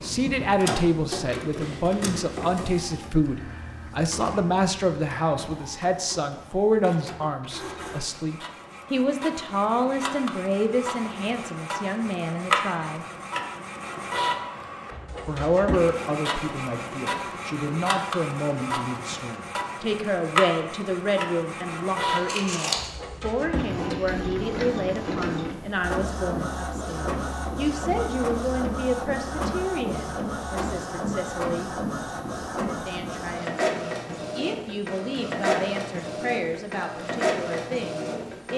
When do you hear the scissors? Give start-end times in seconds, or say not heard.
22.1-22.9.